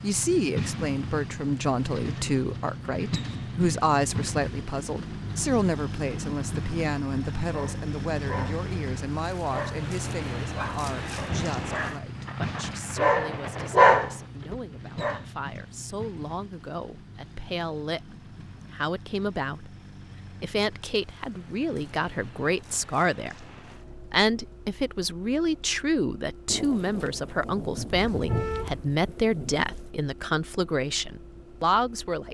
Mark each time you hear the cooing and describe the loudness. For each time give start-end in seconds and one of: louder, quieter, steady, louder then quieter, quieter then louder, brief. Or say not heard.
not heard.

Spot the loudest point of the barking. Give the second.
14 s.